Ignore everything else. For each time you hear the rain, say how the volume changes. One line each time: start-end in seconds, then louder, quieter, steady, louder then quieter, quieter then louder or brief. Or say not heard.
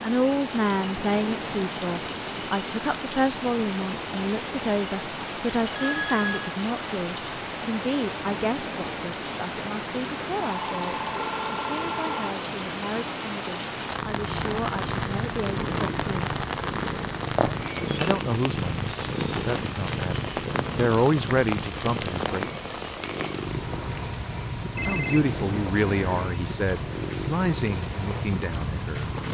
0.0-29.2 steady.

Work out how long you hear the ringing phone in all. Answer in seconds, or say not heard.
4 s.